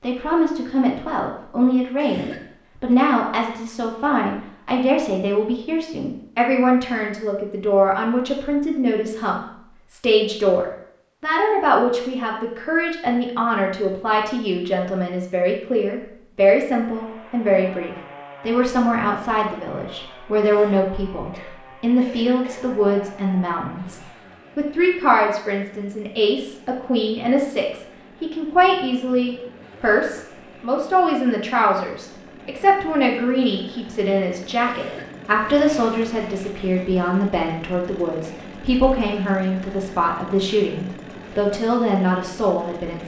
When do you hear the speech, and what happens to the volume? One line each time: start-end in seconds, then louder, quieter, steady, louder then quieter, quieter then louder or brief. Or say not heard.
0.0-43.0 steady.